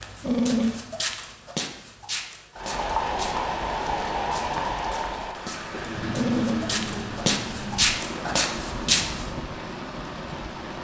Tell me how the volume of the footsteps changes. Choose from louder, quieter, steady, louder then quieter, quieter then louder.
quieter then louder.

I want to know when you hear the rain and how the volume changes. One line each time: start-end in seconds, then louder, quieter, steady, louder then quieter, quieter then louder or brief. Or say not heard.
2.5-10.7 quieter.